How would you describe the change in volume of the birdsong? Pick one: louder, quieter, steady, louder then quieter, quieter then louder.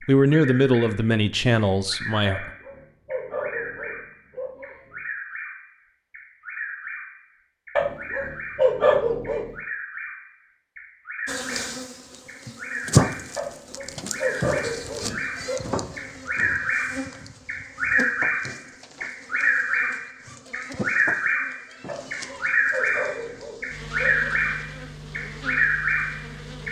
louder.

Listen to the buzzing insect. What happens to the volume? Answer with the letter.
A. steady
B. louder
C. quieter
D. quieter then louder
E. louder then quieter
C.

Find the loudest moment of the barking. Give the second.
9 s.